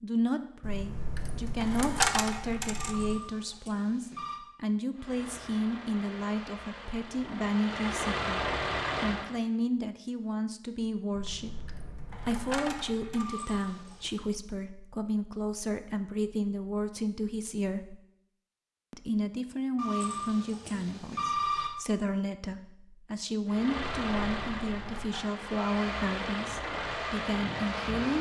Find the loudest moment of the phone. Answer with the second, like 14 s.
21 s.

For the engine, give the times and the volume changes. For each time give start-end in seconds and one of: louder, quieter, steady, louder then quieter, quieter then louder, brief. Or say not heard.
4.9-9.3 louder
23.4-28.1 quieter then louder.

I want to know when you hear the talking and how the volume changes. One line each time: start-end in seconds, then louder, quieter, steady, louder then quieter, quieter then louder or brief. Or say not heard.
0.0-17.9 steady
18.9-28.1 steady.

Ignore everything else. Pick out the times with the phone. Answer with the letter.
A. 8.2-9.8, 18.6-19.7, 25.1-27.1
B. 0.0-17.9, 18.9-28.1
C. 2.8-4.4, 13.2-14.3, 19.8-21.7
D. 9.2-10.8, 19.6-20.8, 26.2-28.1
C.